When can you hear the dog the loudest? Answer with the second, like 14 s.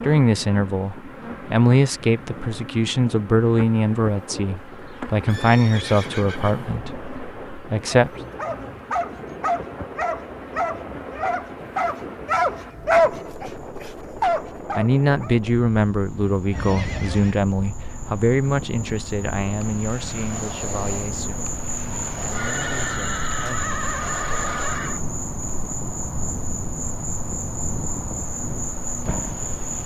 13 s.